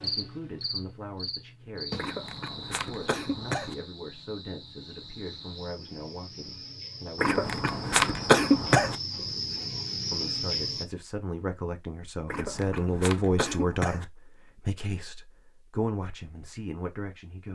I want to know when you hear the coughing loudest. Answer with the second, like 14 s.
8 s.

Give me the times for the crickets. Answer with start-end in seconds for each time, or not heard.
0.0-10.8.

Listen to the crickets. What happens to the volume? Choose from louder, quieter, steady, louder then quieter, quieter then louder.
quieter then louder.